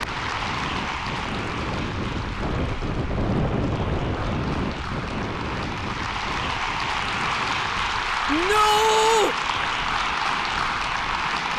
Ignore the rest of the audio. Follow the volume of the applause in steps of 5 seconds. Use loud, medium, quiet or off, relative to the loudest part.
medium, loud, loud.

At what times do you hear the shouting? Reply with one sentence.
The shouting can be heard from 8.2 to 9.3 s.